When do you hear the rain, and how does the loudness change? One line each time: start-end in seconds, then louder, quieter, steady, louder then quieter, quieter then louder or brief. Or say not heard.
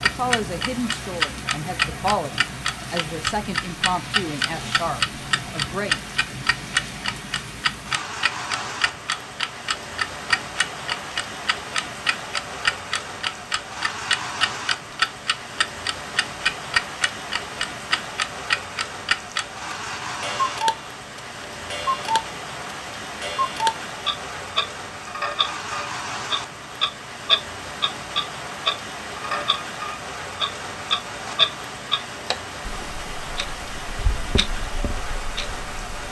0.0-36.0 steady.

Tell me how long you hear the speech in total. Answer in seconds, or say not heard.
6 s.